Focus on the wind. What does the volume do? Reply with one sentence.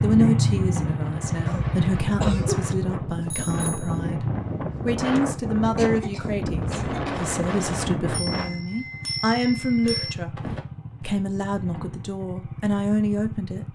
The loudness of the wind goes up.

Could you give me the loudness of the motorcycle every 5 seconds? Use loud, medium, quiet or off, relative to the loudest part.
loud, medium, medium.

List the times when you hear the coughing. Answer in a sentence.
The coughing can be heard from 1.4 to 2.6 s, from 5.2 to 7.2 s and from 9.8 to 10.7 s.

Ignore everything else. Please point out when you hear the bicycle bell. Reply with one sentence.
The bicycle bell can be heard from 3.2 to 4.0 s and from 8.1 to 10.2 s.